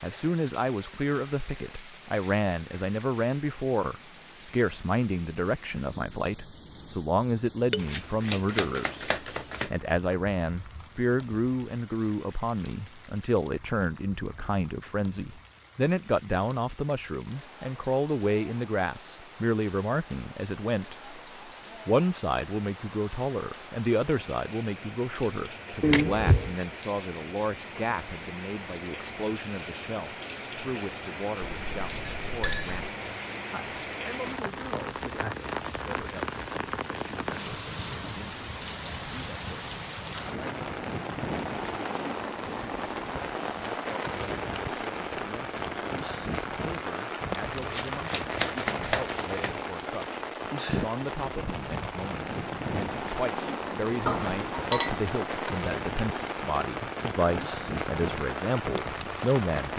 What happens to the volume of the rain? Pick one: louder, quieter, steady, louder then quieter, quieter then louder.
louder.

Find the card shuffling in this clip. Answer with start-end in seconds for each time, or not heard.
7.8-9.7, 25.8-26.6, 47.6-49.5.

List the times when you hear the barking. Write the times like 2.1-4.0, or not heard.
not heard.